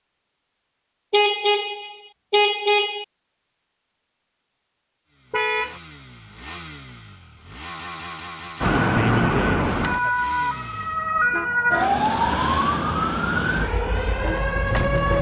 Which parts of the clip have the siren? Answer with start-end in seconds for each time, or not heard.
8.6-15.1.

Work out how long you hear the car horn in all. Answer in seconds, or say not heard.
3 s.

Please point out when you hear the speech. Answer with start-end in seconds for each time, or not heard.
8.4-10.2.